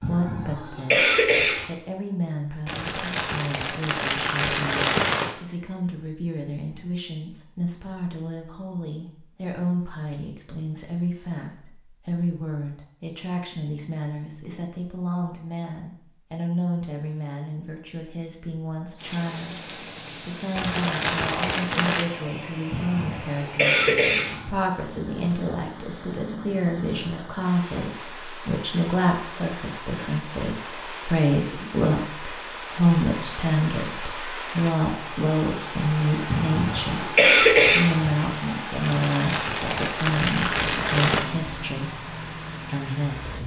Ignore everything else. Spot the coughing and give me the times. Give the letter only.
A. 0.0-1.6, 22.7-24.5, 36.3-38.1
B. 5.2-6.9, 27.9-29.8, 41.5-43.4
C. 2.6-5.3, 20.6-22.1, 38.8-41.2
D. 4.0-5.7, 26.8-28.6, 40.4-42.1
A.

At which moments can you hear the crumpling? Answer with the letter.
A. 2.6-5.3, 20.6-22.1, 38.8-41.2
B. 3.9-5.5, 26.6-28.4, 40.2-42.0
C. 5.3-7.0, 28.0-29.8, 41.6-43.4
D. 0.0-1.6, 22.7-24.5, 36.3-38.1
A.